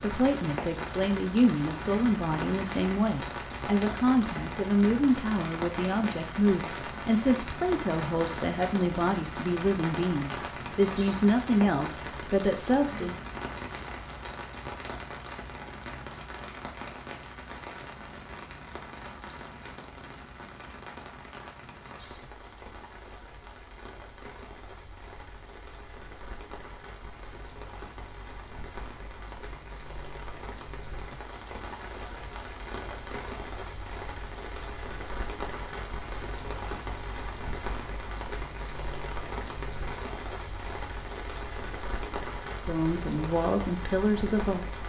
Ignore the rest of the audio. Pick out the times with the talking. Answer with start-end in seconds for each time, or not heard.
0.0-13.2, 42.6-44.8.